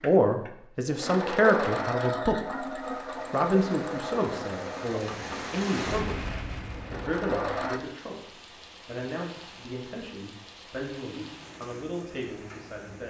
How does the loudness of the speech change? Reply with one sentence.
The loudness of the speech goes down.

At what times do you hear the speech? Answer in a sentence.
The speech can be heard from 0.0 to 13.0 s.